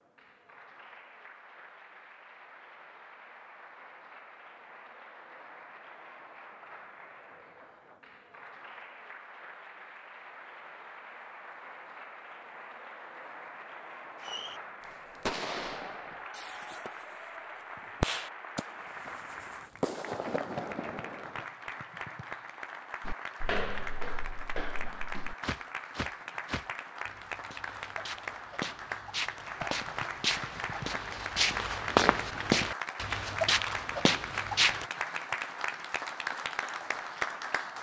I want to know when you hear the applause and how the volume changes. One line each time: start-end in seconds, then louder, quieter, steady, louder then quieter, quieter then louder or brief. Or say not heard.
0.0-37.7 louder.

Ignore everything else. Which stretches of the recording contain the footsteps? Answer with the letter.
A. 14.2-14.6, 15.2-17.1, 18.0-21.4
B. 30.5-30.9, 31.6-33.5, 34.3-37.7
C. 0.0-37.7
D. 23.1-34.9
D.